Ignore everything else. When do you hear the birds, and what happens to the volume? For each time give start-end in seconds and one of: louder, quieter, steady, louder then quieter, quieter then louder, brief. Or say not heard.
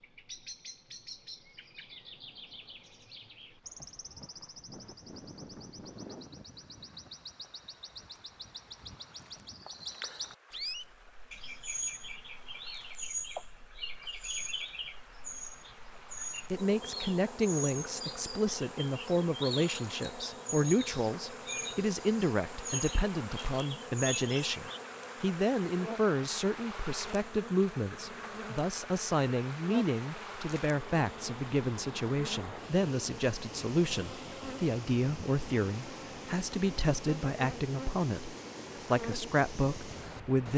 0.0-24.8 louder.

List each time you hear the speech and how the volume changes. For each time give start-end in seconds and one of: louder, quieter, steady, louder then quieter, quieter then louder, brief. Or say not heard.
16.5-40.5 steady.